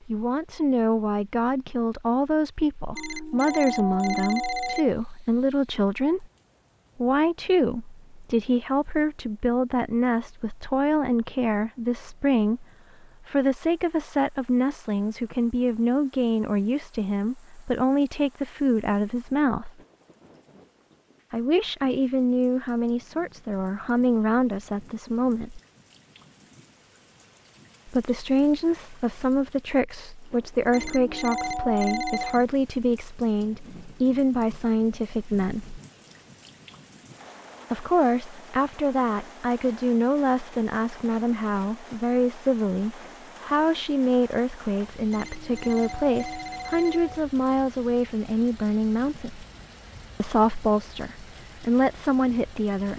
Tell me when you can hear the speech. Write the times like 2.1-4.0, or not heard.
0.1-6.2, 7.0-19.7, 21.3-25.6, 27.9-35.8, 37.7-49.5, 50.2-52.9.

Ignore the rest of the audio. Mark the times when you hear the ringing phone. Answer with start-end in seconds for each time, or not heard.
3.0-5.0, 30.7-32.5, 45.1-47.2.